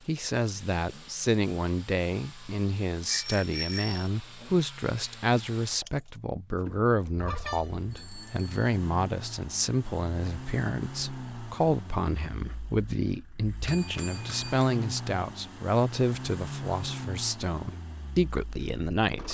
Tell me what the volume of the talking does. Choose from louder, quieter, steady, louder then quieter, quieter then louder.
steady.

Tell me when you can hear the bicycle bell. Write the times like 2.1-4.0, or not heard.
3.0-4.1, 7.2-8.6, 13.7-14.7.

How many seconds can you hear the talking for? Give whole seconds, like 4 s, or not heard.
19 s.